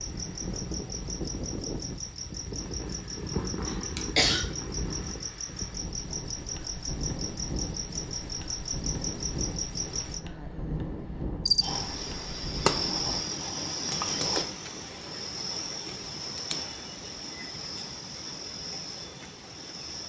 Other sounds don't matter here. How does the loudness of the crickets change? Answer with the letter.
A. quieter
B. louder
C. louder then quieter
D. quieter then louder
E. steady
C.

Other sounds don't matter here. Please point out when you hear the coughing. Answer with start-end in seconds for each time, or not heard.
3.6-4.5.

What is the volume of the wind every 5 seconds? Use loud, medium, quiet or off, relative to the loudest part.
loud, loud, loud, off.